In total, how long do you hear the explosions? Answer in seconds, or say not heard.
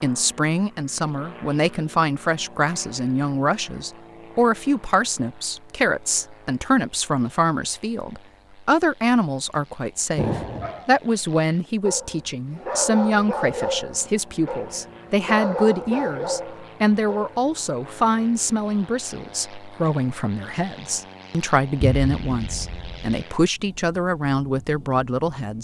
2 s.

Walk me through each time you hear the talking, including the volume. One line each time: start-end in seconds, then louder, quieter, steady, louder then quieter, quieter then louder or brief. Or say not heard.
0.0-25.6 steady.